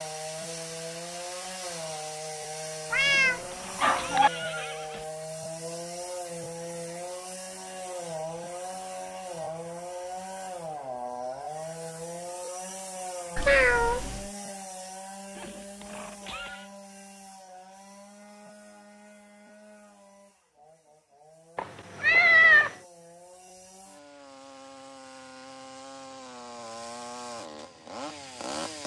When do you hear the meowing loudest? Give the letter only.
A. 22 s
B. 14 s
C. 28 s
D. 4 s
A.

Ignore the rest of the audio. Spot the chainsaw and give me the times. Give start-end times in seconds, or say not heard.
0.0-28.8.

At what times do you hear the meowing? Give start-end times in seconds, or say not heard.
2.9-4.3, 13.3-14.2, 21.6-22.8.